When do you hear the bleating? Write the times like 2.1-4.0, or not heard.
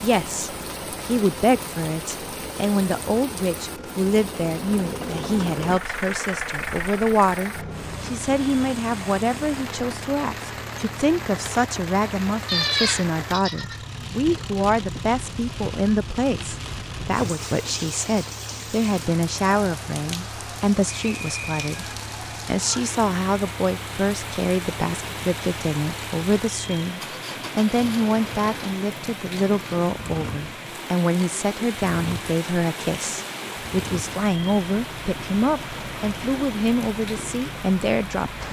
12.4-13.8.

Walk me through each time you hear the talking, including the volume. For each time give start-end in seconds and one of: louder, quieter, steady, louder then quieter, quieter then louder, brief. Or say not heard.
0.0-21.9 steady
22.4-38.4 steady.